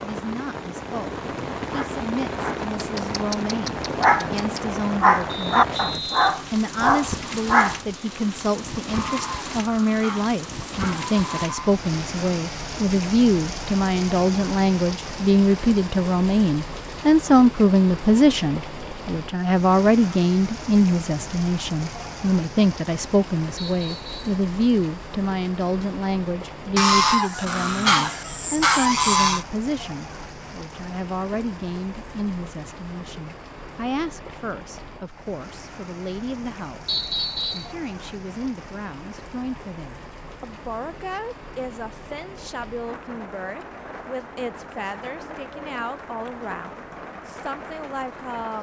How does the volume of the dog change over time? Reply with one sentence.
The loudness of the dog goes up.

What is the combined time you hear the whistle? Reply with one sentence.
The whistle can be heard for 3 seconds in total.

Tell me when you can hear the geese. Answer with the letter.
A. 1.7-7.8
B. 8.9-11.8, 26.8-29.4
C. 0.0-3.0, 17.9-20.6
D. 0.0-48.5
B.